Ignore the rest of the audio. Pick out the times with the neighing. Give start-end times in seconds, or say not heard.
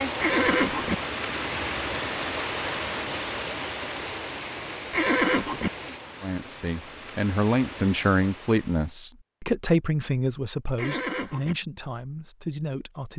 0.2-0.9, 4.9-5.7, 10.8-11.6.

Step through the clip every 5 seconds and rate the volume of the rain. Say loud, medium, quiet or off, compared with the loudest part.
loud, medium, off.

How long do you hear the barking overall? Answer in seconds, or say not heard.
not heard.